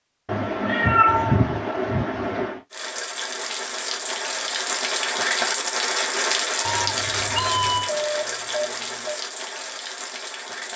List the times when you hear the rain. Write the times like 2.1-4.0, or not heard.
2.7-10.7.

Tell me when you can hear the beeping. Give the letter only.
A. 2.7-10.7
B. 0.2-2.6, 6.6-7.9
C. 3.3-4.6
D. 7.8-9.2
D.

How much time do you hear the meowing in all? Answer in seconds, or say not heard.
4 s.